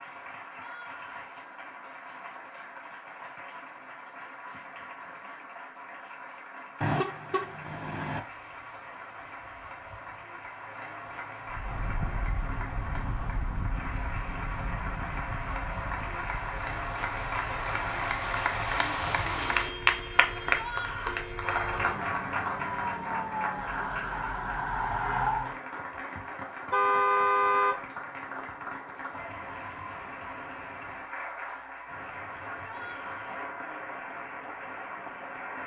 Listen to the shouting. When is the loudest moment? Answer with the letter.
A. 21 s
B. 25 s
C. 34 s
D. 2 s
A.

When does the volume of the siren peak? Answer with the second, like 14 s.
25 s.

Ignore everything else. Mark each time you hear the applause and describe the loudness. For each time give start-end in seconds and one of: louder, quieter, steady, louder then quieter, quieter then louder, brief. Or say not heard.
0.0-35.6 louder then quieter.